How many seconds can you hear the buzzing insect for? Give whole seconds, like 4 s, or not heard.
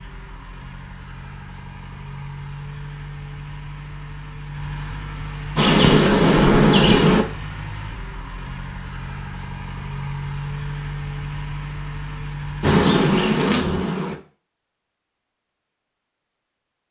3 s.